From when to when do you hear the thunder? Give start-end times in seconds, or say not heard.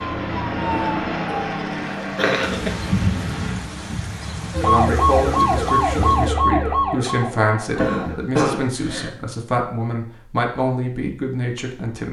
2.4-6.3.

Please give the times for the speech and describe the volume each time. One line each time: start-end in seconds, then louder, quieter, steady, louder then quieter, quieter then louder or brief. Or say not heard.
4.6-12.0 steady.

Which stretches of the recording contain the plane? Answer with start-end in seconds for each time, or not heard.
0.0-3.6.